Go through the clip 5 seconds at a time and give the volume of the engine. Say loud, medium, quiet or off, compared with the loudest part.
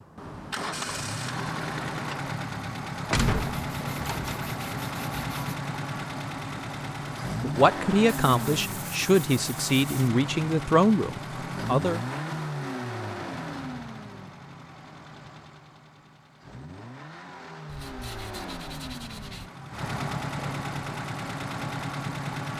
loud, loud, loud, medium, loud.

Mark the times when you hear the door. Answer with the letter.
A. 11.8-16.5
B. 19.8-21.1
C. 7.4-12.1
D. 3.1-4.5
D.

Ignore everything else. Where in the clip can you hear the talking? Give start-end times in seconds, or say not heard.
7.4-12.1.